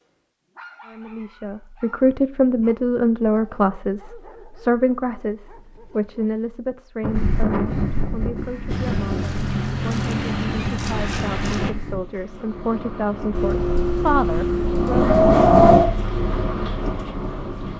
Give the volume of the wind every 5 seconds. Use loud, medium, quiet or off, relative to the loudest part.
off, medium, quiet, loud.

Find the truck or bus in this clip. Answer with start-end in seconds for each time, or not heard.
8.7-11.7, 13.3-17.7.